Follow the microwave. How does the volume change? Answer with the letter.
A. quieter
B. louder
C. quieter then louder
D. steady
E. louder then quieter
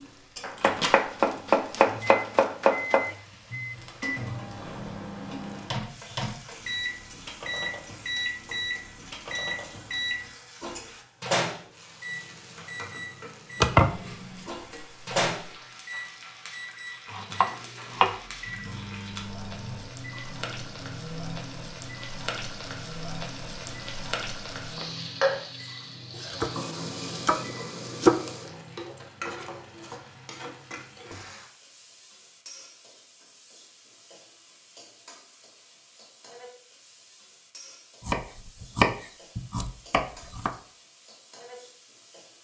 A.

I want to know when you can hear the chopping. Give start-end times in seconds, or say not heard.
0.4-3.1, 13.6-14.4, 17.1-18.1, 26.1-28.1, 38.0-40.5.